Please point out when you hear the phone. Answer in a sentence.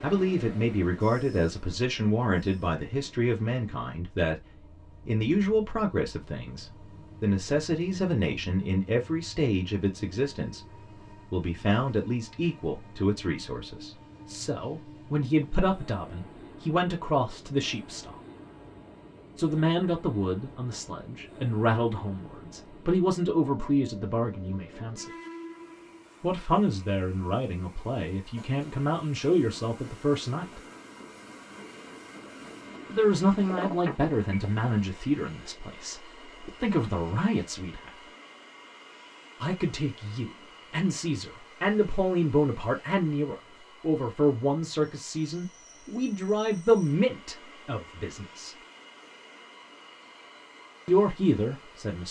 The phone can be heard from 33.5 to 34.6 s.